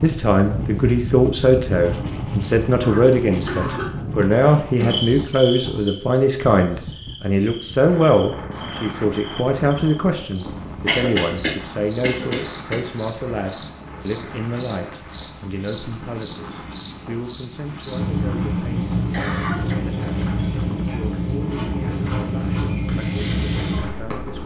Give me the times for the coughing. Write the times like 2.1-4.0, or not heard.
2.8-3.9, 10.8-12.8, 19.1-19.8.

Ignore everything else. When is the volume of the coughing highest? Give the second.
11 s.